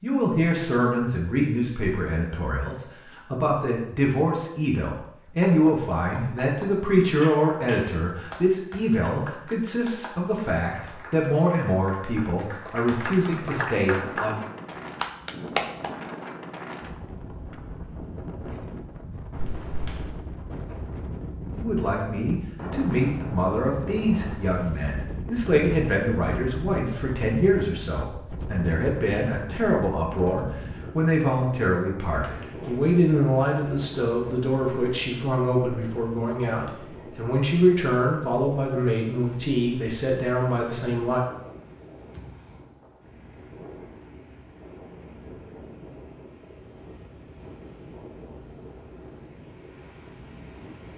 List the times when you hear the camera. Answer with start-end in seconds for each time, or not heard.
19.4-20.1.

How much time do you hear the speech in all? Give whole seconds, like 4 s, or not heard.
34 s.